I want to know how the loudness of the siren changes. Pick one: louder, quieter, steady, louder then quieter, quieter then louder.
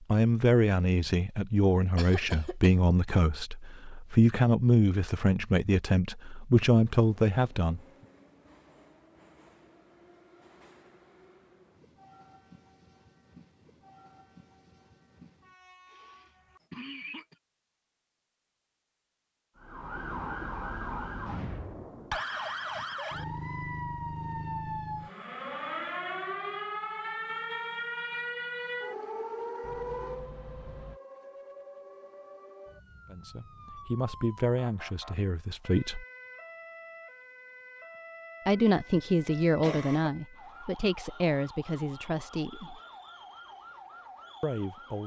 quieter.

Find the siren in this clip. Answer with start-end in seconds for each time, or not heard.
19.6-45.0.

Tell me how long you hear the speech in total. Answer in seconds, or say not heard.
16 s.